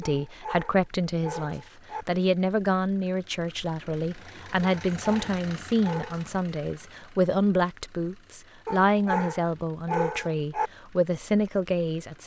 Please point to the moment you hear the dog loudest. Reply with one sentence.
The volume of the dog peaks at 10 seconds.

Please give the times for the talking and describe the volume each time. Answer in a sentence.
The talking can be heard from 0.0 to 12.2 s, at a steady volume.